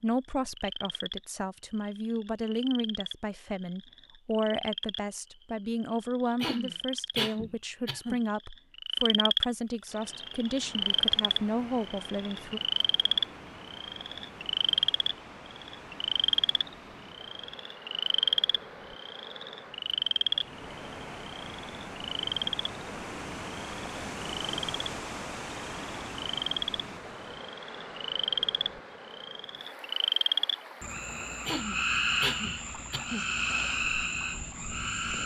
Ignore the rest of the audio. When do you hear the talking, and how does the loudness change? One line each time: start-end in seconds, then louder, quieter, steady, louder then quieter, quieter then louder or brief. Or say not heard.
0.0-12.6 steady.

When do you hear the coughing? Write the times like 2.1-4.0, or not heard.
6.4-8.2, 31.4-33.2.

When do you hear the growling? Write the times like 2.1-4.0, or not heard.
not heard.